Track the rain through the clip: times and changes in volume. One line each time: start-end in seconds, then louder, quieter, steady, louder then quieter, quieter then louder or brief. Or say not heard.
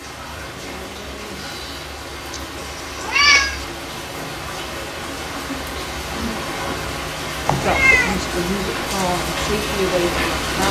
0.0-10.6 louder.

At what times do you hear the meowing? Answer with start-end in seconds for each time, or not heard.
2.3-3.6, 7.5-8.2.